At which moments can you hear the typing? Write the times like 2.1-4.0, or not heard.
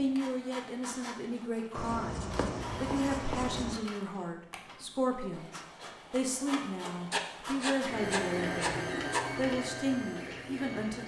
not heard.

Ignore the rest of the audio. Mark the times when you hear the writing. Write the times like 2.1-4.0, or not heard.
1.7-3.8, 7.1-9.2.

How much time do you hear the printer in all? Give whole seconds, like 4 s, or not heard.
11 s.